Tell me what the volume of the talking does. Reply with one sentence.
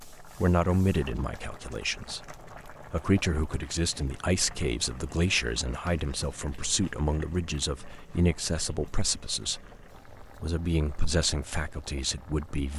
The loudness of the talking stays about the same.